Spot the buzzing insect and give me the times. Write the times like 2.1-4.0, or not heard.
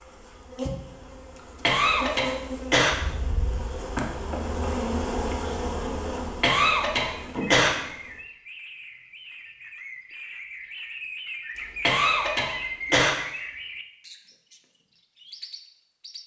0.0-8.2.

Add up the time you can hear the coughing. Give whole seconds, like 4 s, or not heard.
4 s.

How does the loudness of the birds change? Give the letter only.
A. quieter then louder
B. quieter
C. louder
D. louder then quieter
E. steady
D.